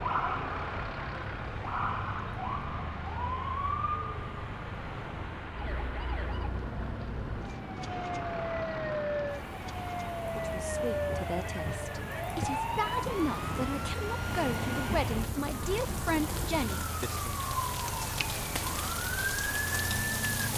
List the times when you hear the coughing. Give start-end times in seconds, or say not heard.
not heard.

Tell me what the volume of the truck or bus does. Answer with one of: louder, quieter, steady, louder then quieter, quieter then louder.
steady.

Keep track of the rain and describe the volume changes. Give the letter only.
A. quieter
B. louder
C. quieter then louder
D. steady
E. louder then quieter
B.